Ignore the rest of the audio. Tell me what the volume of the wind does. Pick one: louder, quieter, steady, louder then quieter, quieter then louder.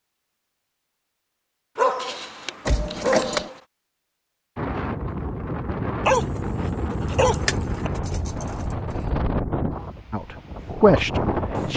steady.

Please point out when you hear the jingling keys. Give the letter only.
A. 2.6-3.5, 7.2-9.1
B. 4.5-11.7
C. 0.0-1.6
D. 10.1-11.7
A.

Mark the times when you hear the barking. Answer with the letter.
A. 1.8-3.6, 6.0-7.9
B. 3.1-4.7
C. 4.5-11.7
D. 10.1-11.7
A.